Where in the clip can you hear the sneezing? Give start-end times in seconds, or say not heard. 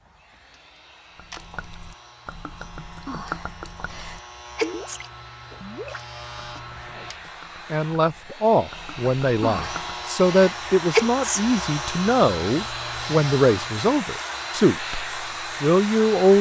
3.0-5.0, 9.4-11.4.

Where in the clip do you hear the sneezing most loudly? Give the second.
11 s.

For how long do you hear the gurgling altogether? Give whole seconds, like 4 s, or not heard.
9 s.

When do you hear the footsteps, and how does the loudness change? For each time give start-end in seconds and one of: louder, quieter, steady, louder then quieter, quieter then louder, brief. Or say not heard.
not heard.